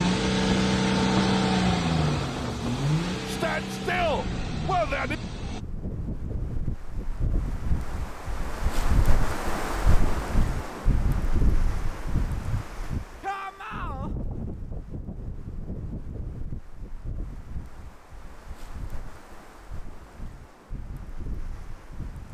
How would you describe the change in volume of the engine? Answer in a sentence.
The volume of the engine goes down.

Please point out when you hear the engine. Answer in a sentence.
You can hear the engine from 0.0 to 5.6 s.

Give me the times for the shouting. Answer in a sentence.
You can hear the shouting from 3.2 to 5.2 s and from 13.2 to 14.1 s.